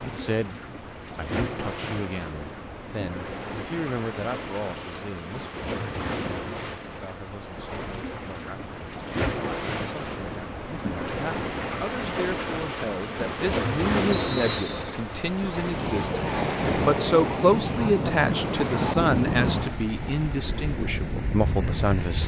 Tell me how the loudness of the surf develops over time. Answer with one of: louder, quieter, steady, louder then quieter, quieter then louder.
louder.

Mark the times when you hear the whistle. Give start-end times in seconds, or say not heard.
14.1-14.9.